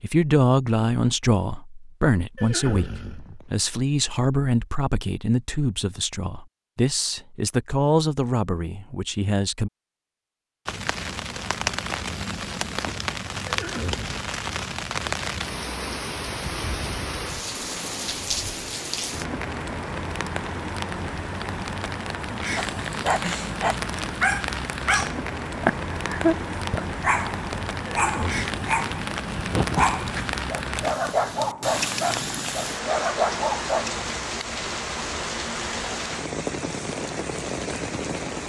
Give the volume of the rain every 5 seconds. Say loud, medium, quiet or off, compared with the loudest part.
off, off, loud, loud, loud, loud, loud, loud.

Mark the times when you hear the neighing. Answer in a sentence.
The neighing can be heard from 2.4 to 3.5 s, from 13.4 to 14.2 s and from 27.9 to 28.6 s.